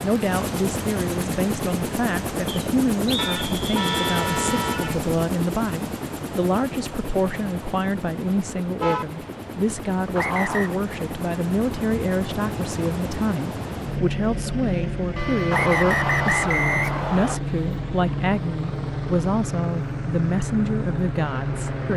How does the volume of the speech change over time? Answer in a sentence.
The volume of the speech stays about the same.